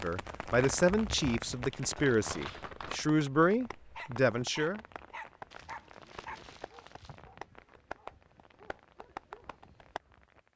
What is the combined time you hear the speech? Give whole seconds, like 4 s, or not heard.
5 s.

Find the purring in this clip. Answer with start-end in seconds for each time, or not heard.
not heard.